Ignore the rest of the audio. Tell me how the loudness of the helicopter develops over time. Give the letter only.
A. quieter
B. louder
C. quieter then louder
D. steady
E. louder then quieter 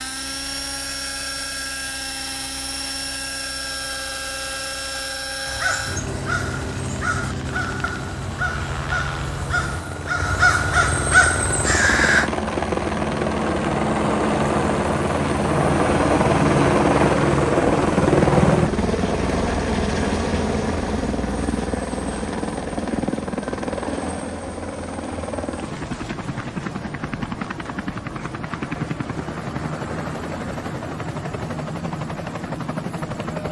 E.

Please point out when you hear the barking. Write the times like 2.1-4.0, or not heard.
not heard.